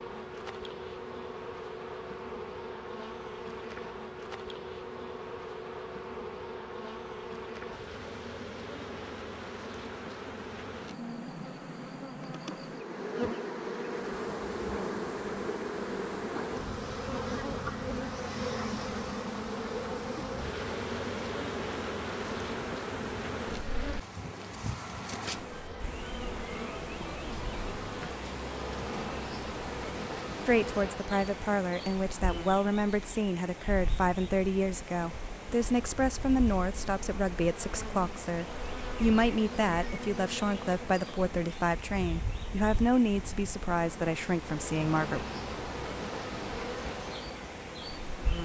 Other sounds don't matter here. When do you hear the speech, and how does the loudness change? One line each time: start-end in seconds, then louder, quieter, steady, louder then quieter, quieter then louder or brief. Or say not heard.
30.4-45.2 steady.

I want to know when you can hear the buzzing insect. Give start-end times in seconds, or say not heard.
0.0-48.4.